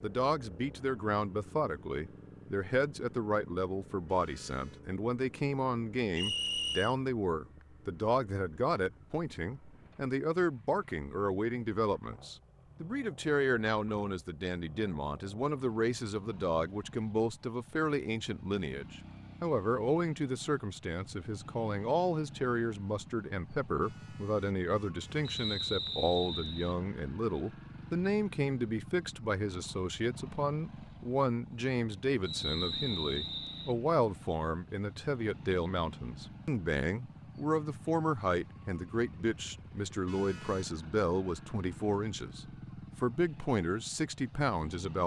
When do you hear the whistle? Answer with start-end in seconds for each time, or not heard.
6.2-7.0, 25.2-26.8, 32.2-33.8.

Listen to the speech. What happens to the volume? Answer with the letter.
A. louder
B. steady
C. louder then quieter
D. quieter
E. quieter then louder
B.